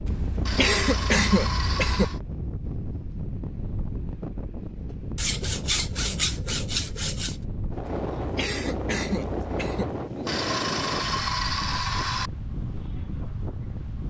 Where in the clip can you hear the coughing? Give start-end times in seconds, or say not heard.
0.1-2.0, 7.9-9.8.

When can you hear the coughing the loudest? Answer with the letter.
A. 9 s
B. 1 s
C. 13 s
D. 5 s
B.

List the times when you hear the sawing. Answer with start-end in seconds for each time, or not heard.
0.5-2.2, 5.2-7.3, 10.2-12.3.